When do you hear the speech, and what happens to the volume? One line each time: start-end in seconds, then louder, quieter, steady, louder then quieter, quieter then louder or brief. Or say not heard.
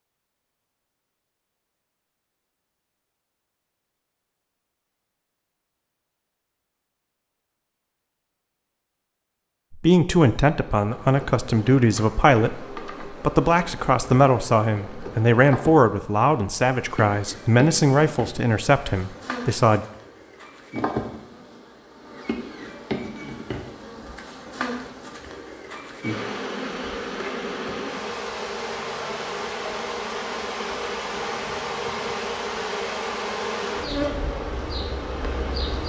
9.7-19.9 steady.